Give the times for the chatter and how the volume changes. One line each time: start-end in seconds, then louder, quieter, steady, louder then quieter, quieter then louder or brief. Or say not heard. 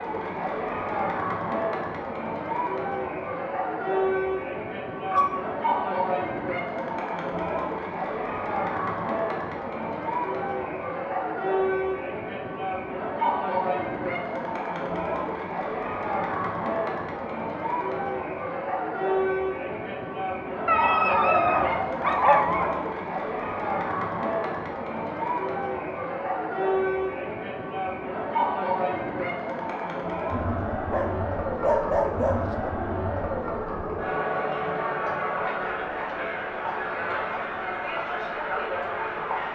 0.0-39.5 steady.